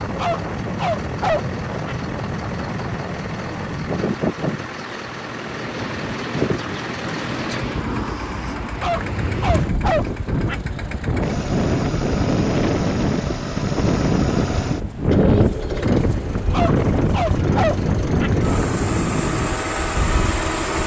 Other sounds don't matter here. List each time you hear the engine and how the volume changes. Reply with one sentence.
You can hear the engine from 0.0 to 20.8 s, getting louder.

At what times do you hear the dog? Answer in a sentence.
You can hear the dog from 0.1 to 1.9 s, from 8.8 to 10.6 s and from 16.5 to 18.3 s.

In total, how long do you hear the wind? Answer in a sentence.
The wind can be heard for 21 seconds in total.